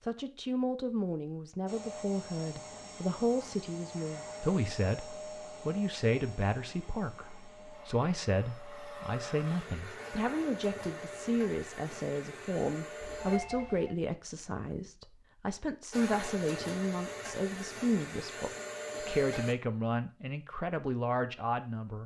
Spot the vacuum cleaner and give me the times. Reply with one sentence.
You can hear the vacuum cleaner from 1.6 to 13.4 s and from 15.9 to 19.6 s.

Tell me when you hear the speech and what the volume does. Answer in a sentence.
You can hear the speech from 0.1 to 22.0 s, at a steady volume.